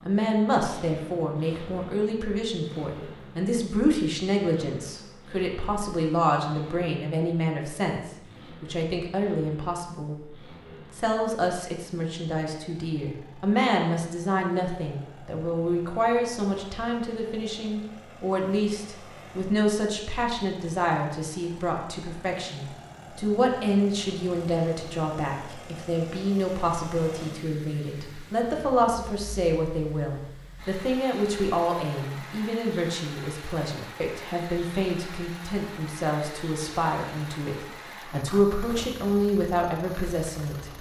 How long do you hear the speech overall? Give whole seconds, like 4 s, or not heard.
41 s.